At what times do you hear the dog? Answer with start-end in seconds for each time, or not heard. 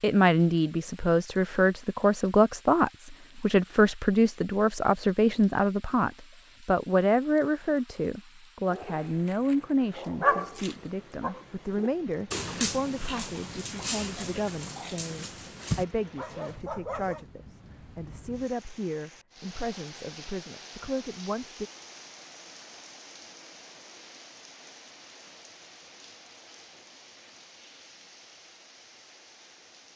8.7-17.2.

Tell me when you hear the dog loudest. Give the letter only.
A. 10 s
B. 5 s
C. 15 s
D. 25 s
A.